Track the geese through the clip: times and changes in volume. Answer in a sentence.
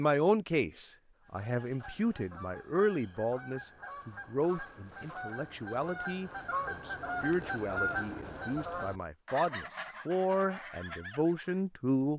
You can hear the geese from 1.2 to 11.6 s, getting louder then quieter.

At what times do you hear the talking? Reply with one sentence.
You can hear the talking from 0.0 to 12.1 s.